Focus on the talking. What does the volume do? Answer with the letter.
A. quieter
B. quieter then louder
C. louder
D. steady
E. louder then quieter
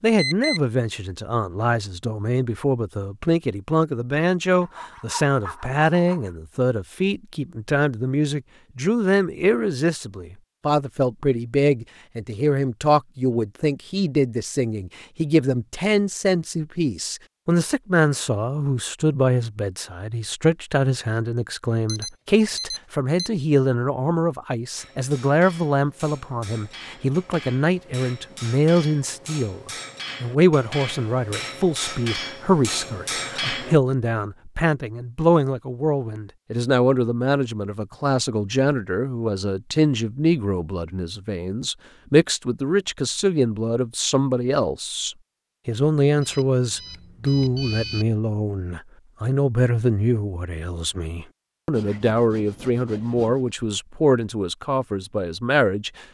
D.